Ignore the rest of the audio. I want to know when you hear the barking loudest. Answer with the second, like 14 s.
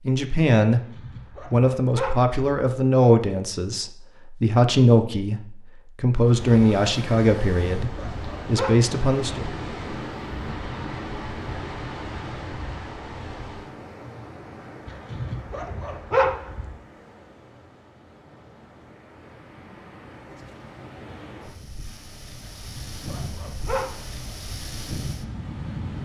16 s.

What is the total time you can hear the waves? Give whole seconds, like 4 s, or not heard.
20 s.